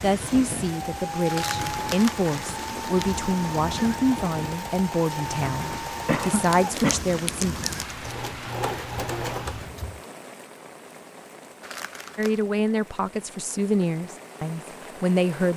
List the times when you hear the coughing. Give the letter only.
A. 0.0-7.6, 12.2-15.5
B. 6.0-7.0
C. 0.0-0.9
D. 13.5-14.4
B.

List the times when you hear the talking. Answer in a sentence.
The talking can be heard from 0.0 to 7.6 s and from 12.2 to 15.5 s.